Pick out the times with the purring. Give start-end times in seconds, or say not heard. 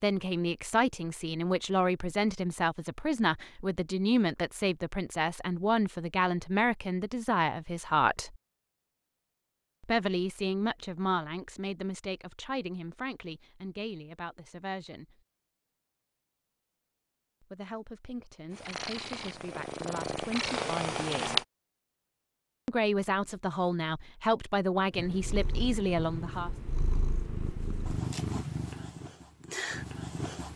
18.5-21.4, 24.9-30.5.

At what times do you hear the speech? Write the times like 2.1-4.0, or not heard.
0.0-8.3, 9.8-15.2, 17.4-21.4, 22.6-26.5.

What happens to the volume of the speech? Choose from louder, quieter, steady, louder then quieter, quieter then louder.
quieter then louder.